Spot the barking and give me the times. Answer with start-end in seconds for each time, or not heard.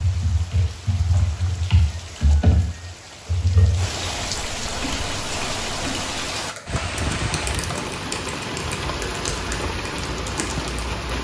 not heard.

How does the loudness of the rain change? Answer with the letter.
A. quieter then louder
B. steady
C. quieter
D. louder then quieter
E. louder
E.